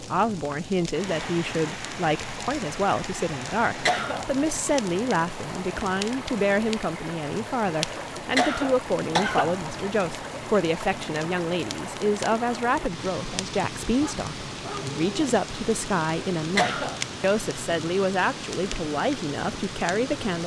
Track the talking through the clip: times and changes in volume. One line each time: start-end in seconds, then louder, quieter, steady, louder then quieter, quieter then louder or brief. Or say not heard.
0.0-20.4 steady.